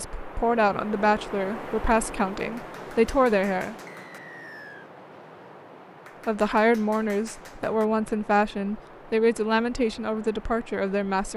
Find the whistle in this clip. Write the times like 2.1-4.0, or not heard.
3.9-4.9.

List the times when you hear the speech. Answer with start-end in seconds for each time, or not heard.
0.0-3.8, 6.2-11.3.